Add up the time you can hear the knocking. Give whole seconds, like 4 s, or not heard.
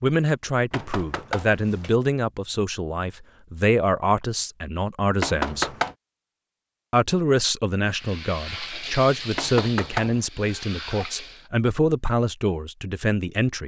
3 s.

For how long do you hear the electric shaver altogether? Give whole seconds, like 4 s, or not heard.
not heard.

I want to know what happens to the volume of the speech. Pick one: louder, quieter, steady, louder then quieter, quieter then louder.
steady.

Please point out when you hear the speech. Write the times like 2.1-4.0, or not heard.
0.0-5.7, 6.9-13.6.